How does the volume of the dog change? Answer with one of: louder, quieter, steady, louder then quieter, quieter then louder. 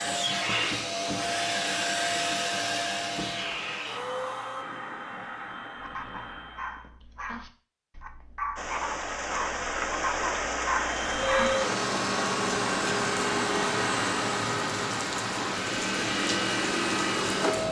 louder.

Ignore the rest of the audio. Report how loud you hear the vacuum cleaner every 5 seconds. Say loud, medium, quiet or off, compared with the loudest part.
loud, quiet, loud, loud.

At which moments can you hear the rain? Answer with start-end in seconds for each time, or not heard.
8.6-17.6.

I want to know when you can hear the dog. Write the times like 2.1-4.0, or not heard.
5.8-11.6.